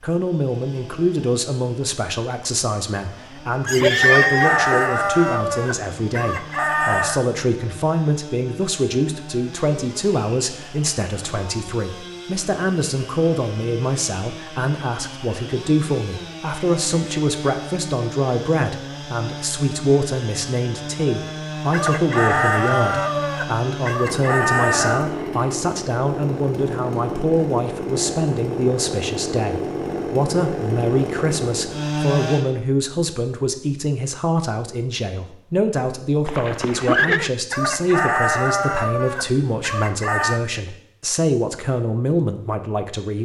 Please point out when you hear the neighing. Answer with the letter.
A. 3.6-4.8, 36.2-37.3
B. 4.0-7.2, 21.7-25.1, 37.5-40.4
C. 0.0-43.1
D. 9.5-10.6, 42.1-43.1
A.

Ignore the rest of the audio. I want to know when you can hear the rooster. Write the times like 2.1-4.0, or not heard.
4.0-7.2, 21.7-25.1, 37.5-40.4.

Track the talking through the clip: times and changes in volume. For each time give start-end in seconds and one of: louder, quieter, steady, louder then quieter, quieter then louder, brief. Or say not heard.
0.0-43.1 steady.